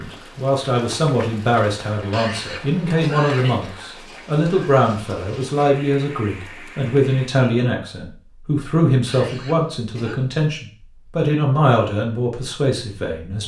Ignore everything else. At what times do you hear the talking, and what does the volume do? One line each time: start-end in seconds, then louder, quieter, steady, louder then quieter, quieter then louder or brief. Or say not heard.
0.0-13.4 steady.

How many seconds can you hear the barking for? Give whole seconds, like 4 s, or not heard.
not heard.